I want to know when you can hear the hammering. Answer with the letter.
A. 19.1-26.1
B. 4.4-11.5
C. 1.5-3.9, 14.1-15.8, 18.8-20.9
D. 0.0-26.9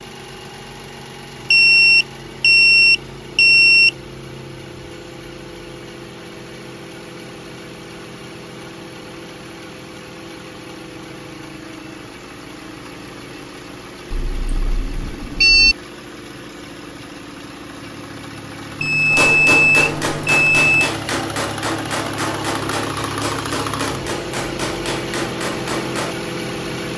A.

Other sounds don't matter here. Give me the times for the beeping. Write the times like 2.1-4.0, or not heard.
1.5-3.9, 14.1-15.8, 18.8-20.9.